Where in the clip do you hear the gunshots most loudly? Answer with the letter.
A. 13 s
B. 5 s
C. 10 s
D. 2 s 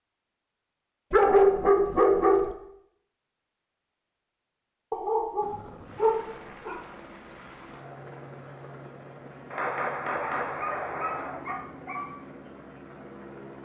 C.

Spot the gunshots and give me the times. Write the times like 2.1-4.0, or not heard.
9.5-11.4.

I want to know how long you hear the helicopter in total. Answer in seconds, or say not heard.
8 s.